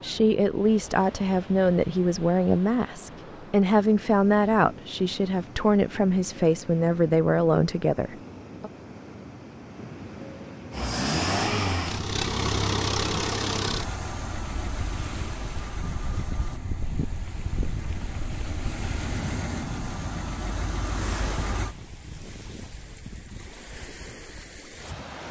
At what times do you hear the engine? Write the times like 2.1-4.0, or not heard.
10.7-21.8.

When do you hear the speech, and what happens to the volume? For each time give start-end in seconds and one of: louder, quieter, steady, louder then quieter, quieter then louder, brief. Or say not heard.
0.0-8.7 steady.